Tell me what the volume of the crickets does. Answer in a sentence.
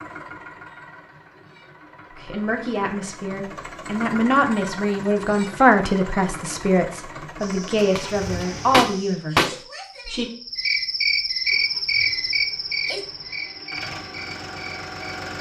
The volume of the crickets goes up, then down.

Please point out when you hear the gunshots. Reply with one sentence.
The gunshots can be heard from 8.0 to 9.6 s.